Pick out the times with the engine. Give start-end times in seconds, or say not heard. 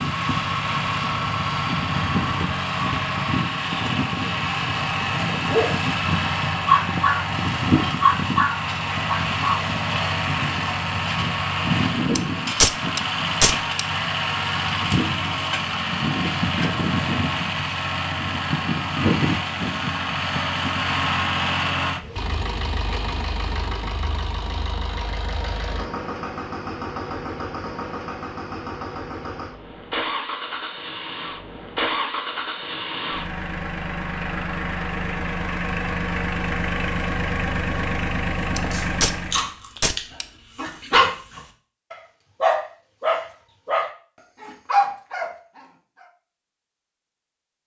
0.0-39.5.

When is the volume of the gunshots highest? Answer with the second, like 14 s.
13 s.